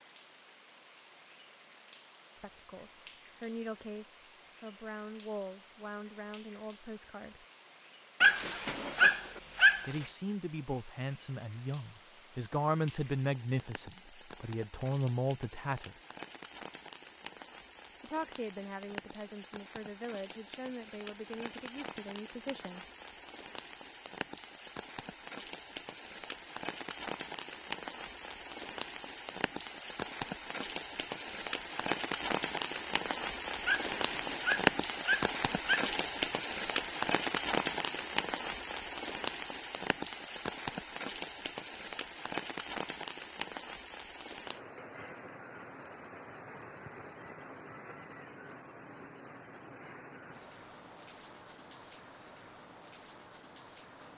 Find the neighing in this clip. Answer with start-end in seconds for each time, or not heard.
not heard.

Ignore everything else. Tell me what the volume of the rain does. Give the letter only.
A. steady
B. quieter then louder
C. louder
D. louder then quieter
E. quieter
D.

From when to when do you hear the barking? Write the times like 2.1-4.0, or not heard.
8.2-9.9, 33.6-36.1.